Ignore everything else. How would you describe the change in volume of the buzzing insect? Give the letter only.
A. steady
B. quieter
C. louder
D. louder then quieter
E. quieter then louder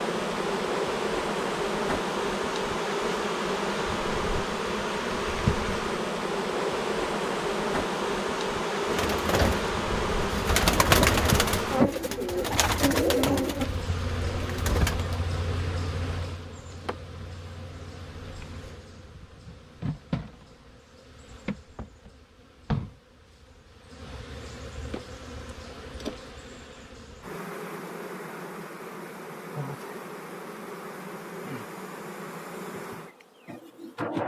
B.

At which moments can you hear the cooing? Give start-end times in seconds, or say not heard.
8.8-15.2.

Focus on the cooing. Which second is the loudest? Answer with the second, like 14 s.
11 s.